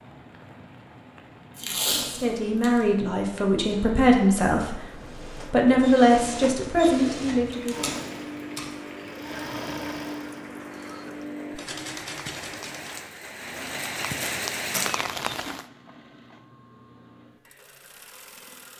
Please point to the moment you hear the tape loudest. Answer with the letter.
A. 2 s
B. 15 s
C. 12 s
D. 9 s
A.